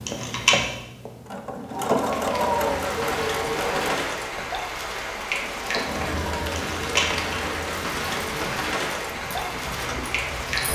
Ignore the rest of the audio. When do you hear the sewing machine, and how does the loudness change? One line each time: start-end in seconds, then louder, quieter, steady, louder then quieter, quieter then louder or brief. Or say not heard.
0.0-10.6 quieter.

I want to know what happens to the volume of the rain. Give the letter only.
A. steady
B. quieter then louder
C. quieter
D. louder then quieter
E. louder
A.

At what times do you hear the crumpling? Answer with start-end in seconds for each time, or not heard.
0.1-0.6, 6.5-7.3.